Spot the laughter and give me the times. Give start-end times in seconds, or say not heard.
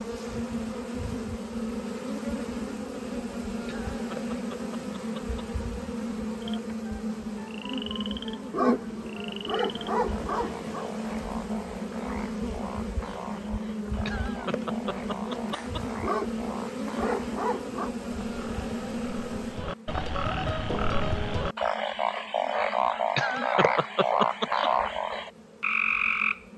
3.6-5.4, 14.1-16.0, 23.1-24.7.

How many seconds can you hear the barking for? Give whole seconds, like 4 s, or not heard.
4 s.